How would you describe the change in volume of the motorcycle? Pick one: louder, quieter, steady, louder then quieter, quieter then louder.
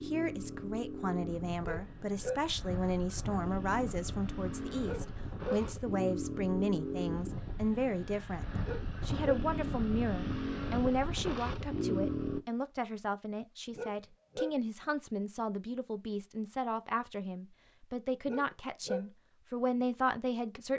louder.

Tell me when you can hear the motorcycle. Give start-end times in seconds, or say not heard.
0.0-12.4.